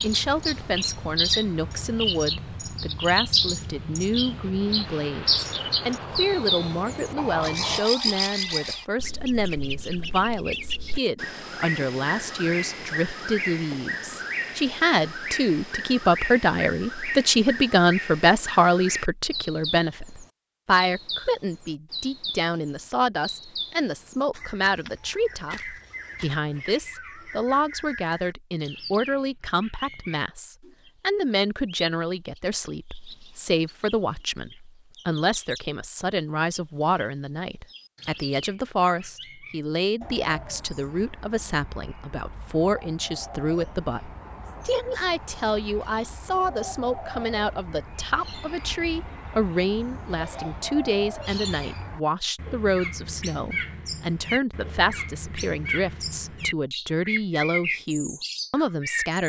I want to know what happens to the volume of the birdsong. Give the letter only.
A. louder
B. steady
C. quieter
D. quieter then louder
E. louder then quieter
D.